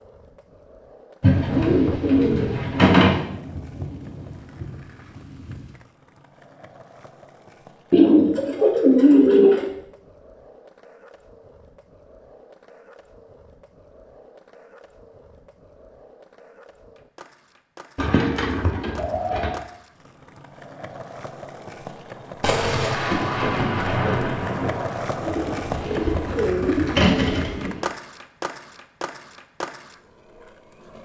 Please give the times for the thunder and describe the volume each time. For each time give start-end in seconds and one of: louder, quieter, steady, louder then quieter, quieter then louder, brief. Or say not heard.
1.2-5.8 quieter
22.4-25.3 brief.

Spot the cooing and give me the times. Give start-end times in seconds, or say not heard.
1.2-3.2, 7.9-9.7, 17.9-19.6, 25.2-27.8.